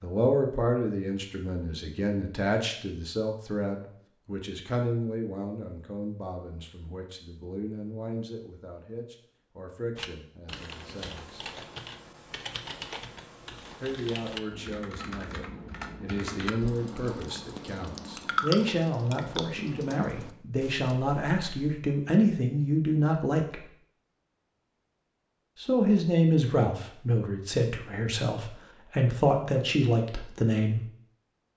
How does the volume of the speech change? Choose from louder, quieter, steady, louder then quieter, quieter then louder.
quieter then louder.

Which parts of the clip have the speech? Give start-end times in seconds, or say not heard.
0.0-11.4, 13.8-23.7, 25.6-30.9.